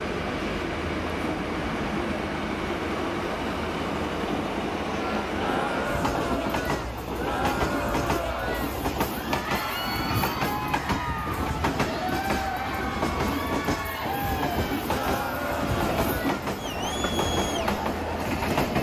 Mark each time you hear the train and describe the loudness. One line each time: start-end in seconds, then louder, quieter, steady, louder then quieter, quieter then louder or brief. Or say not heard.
0.0-18.7 steady.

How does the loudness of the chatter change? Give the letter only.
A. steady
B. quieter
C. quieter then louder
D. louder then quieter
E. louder
A.